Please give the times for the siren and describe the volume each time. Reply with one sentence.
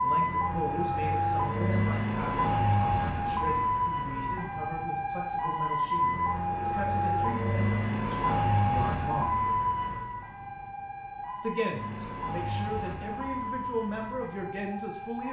You can hear the siren from 0.0 to 15.2 s, getting quieter.